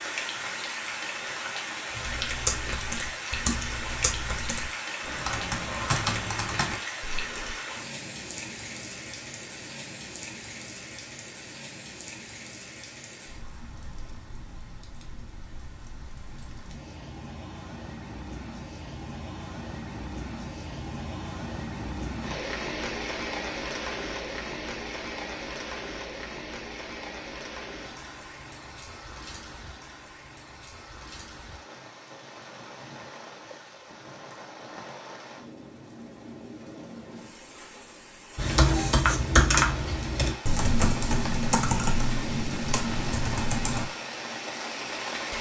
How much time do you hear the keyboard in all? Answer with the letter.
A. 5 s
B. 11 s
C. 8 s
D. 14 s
B.